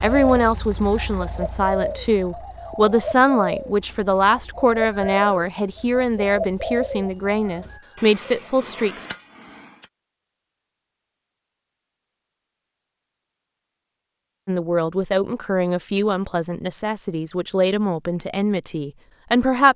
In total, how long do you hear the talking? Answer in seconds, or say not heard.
14 s.